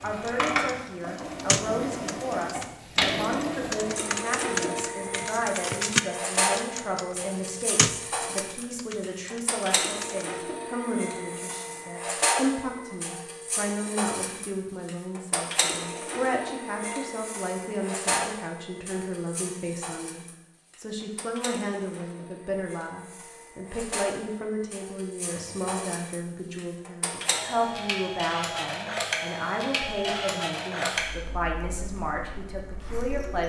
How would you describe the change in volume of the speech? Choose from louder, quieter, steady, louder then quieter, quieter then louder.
steady.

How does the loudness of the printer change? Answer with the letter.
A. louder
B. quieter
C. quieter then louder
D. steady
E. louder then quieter
C.